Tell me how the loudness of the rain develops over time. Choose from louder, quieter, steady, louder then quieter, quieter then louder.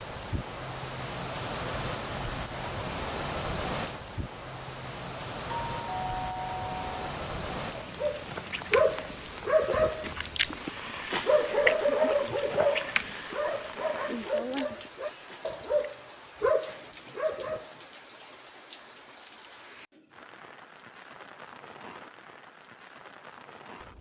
quieter.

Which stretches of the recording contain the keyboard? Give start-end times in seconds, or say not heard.
not heard.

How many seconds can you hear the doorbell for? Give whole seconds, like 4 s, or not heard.
2 s.